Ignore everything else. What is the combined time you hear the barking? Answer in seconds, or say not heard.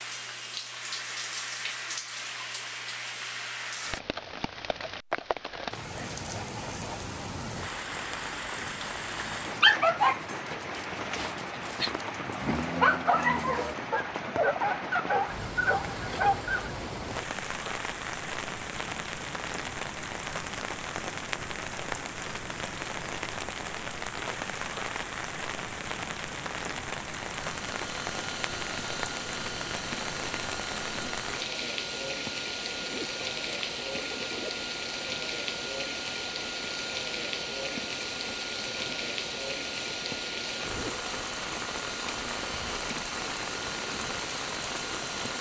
8 s.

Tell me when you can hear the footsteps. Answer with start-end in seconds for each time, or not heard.
not heard.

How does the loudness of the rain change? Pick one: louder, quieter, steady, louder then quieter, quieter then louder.
steady.